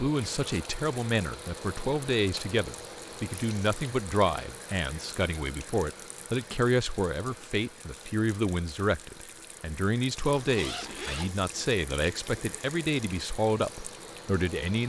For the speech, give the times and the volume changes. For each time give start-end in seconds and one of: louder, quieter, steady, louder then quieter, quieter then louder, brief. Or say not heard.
0.0-14.8 steady.